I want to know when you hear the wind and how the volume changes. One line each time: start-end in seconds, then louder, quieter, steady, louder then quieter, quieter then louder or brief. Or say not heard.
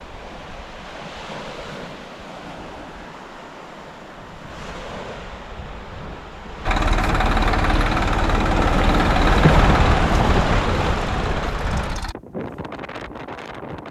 0.0-13.8 louder then quieter.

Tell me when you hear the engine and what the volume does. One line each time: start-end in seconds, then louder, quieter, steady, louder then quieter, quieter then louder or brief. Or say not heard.
6.7-12.2 quieter.